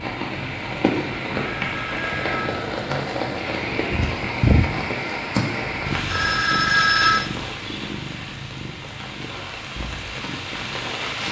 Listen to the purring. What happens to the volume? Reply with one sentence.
The loudness of the purring goes up, then down.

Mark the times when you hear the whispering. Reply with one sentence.
The whispering can't be heard in this clip.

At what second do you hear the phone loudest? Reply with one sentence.
The loudest moment of the phone is at 7 seconds.